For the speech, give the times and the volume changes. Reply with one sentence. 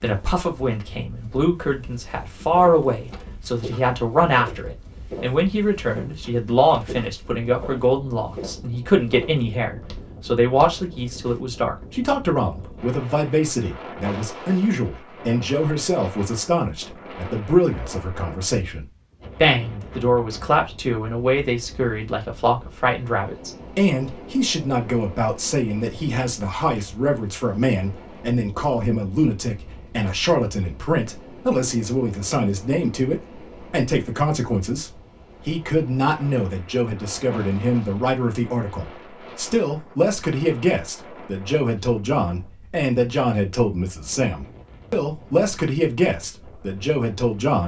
The speech can be heard from 0.0 to 47.6 s, at a steady volume.